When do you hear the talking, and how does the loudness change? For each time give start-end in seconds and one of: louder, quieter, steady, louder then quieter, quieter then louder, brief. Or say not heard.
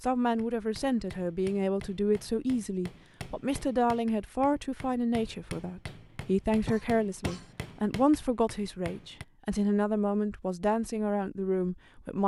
0.0-12.2 steady.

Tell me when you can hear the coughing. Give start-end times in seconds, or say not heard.
6.7-7.5.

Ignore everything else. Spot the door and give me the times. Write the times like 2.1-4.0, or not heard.
not heard.